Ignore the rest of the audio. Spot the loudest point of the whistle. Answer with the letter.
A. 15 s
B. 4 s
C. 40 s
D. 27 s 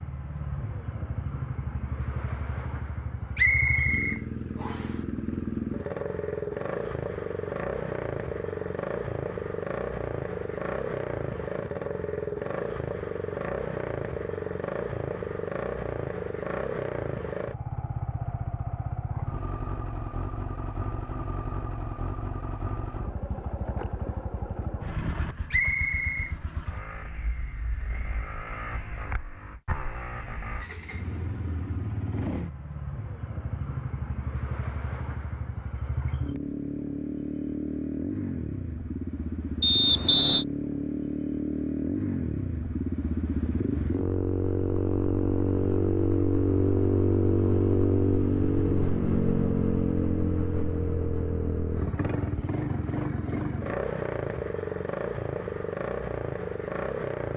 C.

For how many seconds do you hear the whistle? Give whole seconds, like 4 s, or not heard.
3 s.